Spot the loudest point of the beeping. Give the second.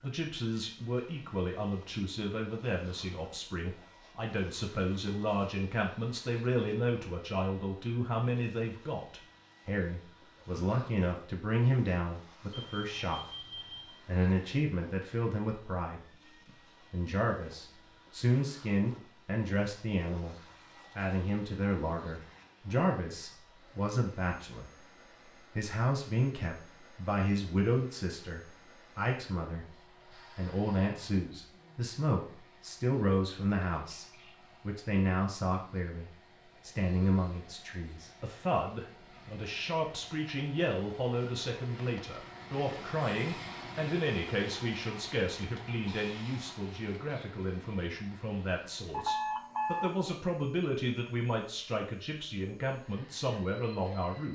49 s.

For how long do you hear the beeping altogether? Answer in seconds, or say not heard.
2 s.